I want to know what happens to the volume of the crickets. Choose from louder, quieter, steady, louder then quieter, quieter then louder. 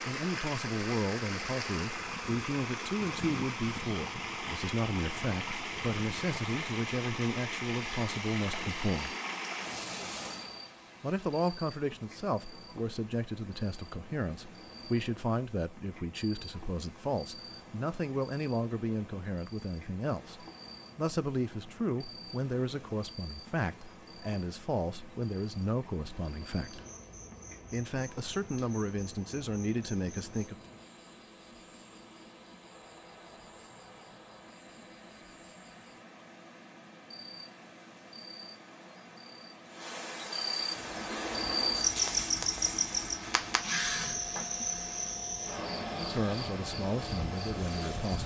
louder.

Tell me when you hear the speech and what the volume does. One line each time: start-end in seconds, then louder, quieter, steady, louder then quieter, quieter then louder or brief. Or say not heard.
0.1-9.2 steady
11.0-26.8 steady
27.7-30.6 brief
46.0-48.2 brief.